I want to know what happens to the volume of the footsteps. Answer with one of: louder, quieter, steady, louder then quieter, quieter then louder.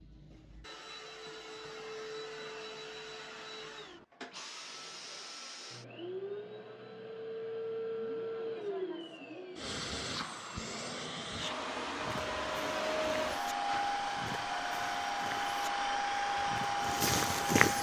louder.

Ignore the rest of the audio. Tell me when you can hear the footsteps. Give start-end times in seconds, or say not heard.
11.9-17.7.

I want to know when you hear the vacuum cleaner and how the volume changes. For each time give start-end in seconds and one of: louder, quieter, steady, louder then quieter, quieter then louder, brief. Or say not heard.
0.0-17.7 louder.